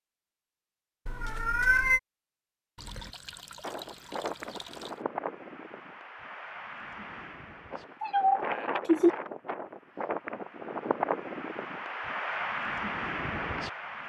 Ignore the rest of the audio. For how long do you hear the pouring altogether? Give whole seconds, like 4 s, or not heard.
2 s.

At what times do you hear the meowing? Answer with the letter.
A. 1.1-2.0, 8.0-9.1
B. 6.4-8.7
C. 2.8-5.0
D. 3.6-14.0
A.